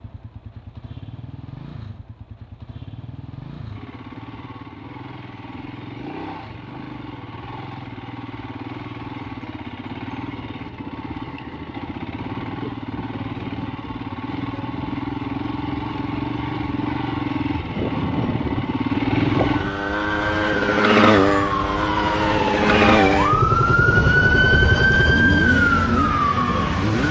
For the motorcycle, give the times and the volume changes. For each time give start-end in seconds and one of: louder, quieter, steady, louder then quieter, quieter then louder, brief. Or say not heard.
0.0-27.0 louder.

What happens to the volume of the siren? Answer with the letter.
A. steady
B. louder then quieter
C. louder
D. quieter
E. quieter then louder
C.